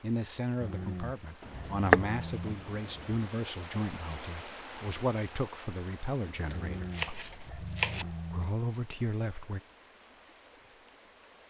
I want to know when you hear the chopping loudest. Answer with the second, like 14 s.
2 s.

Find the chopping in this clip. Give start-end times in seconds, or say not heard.
1.4-3.2, 6.2-8.1.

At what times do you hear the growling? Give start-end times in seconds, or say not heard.
0.6-2.5, 6.5-8.5.